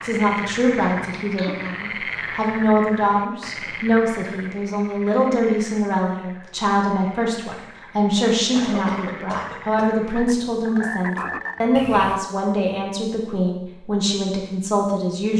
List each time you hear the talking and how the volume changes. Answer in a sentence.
You can hear the talking from 0.0 to 15.3 s, at a steady volume.